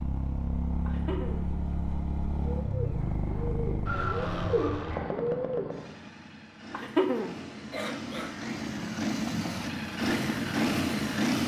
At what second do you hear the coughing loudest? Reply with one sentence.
The volume of the coughing peaks at 7 seconds.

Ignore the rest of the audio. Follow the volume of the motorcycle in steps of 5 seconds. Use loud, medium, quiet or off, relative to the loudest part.
medium, medium, loud.